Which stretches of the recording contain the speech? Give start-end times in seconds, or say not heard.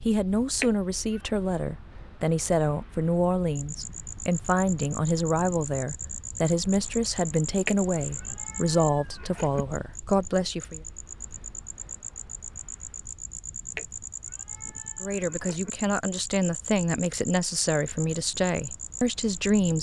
0.0-10.8, 15.0-19.7.